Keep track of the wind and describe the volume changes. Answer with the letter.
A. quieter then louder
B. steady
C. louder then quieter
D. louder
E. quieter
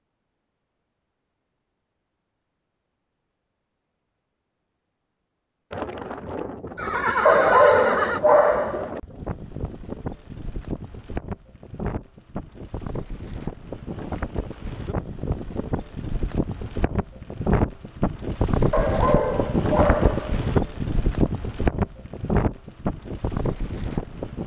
D.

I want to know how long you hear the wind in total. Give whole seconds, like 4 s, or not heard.
19 s.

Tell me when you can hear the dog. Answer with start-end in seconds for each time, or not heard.
7.2-8.9, 18.7-20.4.